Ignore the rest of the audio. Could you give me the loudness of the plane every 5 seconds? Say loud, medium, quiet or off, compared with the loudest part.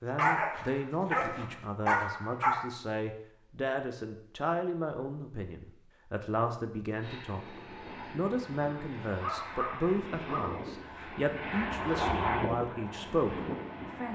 off, medium, loud.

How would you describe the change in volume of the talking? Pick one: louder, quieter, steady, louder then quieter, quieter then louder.
steady.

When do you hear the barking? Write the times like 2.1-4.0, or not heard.
0.1-2.7, 8.7-10.6.